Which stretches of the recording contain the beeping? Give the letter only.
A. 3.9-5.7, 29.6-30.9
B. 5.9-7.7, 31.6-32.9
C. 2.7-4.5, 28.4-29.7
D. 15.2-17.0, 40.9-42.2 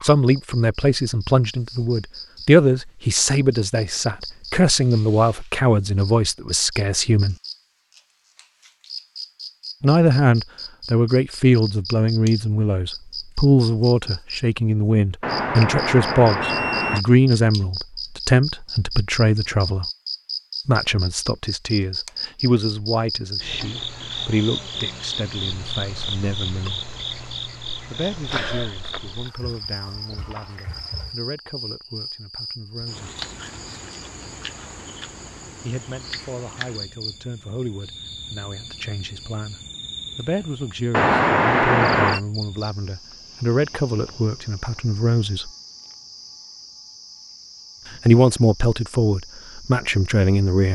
D.